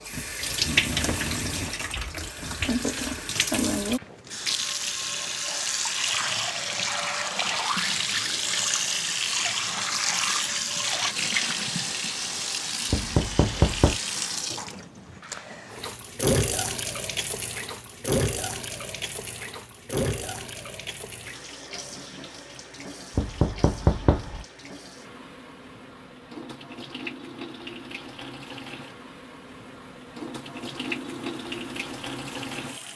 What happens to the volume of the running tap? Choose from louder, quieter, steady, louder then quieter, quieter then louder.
quieter.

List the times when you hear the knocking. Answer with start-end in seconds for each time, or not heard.
12.9-14.0, 23.1-24.4.